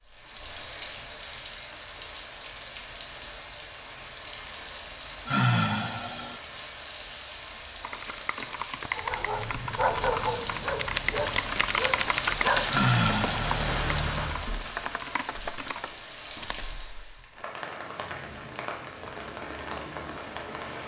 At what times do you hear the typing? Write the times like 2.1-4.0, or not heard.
7.8-16.7.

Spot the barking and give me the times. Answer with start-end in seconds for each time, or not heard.
8.9-14.6.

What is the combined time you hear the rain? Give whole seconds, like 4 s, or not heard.
21 s.